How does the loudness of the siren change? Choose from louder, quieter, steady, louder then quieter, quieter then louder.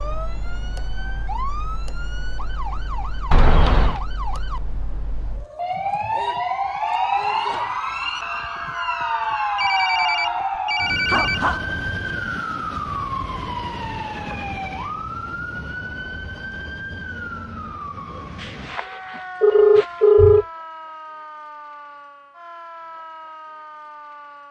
louder then quieter.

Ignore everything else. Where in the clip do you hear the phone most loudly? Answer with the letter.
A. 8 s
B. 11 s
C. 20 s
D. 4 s
C.